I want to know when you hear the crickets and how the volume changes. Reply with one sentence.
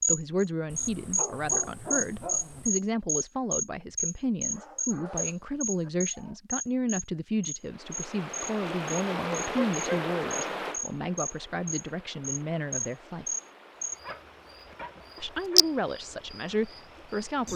The crickets can be heard from 0.0 to 17.5 s, getting quieter then louder.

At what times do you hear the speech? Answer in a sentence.
The speech can be heard from 0.1 to 13.2 s and from 15.2 to 17.5 s.